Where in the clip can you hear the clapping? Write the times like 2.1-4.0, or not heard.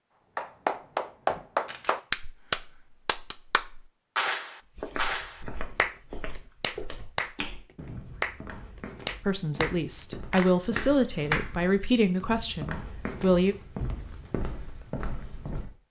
0.3-11.5.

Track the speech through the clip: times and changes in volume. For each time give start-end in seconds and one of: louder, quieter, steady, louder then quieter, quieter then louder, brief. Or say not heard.
9.2-13.6 louder then quieter.